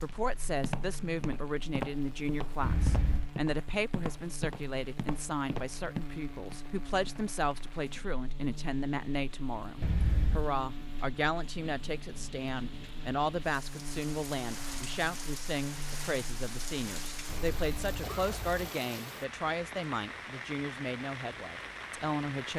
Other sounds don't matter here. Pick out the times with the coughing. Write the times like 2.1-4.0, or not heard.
2.6-3.3, 9.8-10.5, 17.2-18.8.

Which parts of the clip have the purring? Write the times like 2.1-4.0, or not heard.
not heard.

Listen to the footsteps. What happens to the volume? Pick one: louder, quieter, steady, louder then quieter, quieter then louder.
steady.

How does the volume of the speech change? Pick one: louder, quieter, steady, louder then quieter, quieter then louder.
steady.